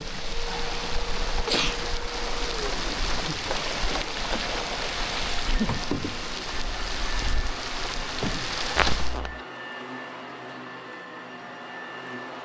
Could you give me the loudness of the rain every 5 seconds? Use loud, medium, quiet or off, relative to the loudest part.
loud, loud, off.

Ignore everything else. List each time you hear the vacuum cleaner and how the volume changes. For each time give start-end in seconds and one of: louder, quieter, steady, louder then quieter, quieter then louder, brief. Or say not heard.
0.2-12.3 steady.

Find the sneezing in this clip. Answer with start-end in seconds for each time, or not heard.
0.5-1.8, 8.8-9.3.